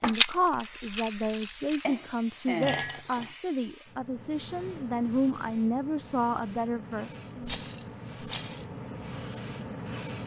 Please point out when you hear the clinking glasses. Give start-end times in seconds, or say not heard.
1.8-3.4.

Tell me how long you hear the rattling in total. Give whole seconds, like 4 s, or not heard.
3 s.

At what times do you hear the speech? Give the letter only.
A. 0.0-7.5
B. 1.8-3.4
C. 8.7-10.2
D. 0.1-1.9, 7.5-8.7
A.